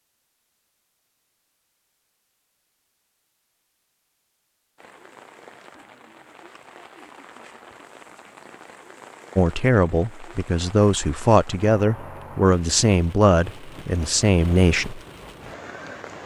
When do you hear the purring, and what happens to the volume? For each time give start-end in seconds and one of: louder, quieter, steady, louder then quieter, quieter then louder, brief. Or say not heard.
not heard.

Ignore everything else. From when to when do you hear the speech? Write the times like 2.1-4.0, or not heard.
9.3-15.0.